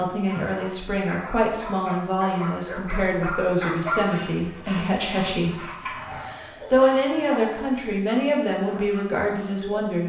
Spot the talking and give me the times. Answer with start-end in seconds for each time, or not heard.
0.0-10.0.